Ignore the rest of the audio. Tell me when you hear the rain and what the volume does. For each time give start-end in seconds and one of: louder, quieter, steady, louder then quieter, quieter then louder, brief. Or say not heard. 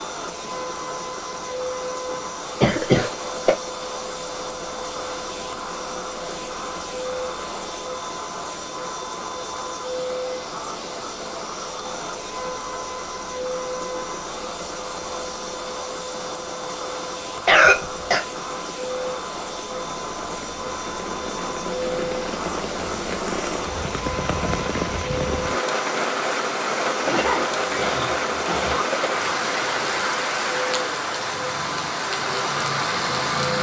0.0-33.5 louder.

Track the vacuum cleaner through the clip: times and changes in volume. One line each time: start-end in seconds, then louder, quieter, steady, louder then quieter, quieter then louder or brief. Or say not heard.
0.0-33.5 steady.